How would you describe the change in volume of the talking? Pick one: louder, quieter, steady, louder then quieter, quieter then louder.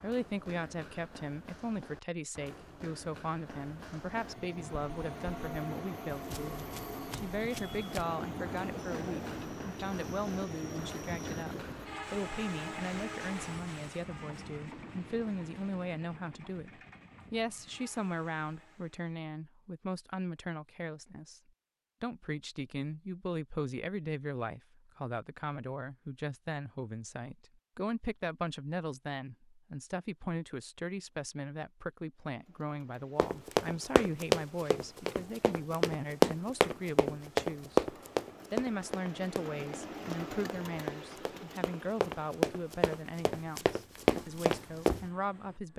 steady.